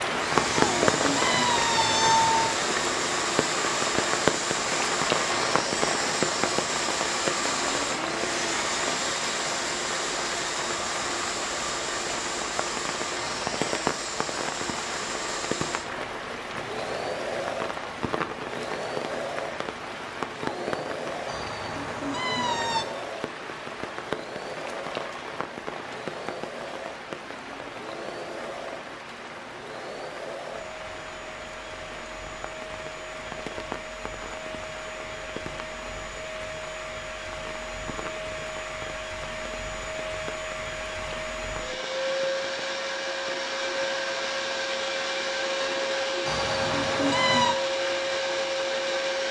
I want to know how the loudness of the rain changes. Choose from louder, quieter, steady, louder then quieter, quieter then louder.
quieter.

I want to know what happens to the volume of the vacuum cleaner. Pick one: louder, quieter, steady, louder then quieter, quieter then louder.
quieter then louder.